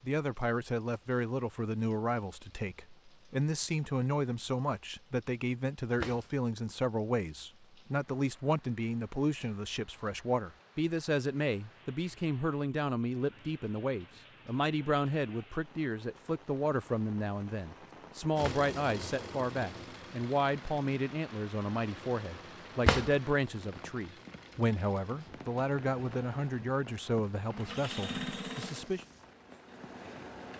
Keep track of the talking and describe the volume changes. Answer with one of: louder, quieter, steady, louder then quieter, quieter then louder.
steady.